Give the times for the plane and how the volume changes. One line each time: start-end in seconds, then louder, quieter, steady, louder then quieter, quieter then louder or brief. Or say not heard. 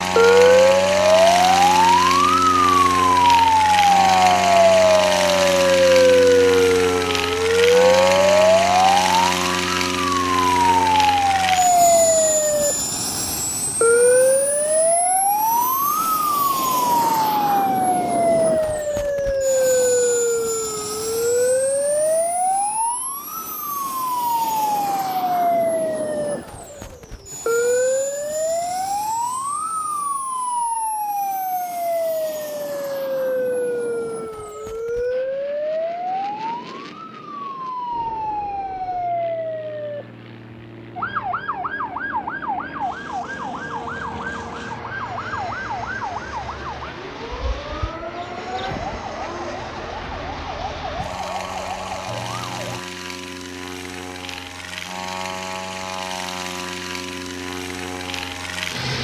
0.0-58.9 quieter then louder.